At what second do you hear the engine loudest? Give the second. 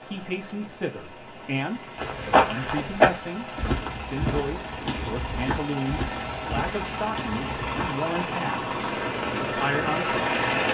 10 s.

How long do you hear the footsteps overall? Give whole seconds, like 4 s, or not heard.
6 s.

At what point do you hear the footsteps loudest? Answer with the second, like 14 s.
3 s.